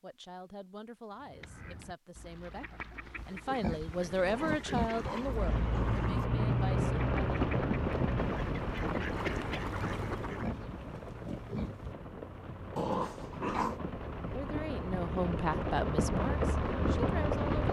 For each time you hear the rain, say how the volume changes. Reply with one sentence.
The rain can be heard from 5.2 to 17.6 s, getting quieter then louder.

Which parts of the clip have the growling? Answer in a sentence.
The growling can be heard from 4.2 to 6.2 s and from 12.8 to 13.8 s.